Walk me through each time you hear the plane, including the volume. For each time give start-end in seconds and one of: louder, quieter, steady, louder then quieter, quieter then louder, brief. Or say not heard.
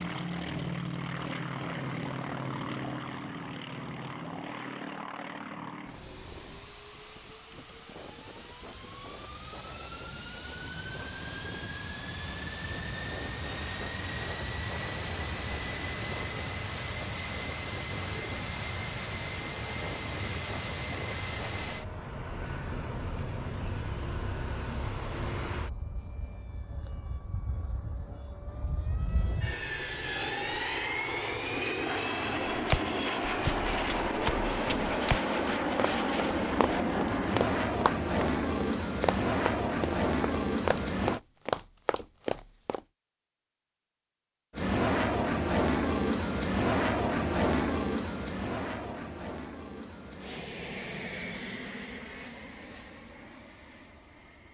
0.0-41.2 louder
44.5-54.4 quieter.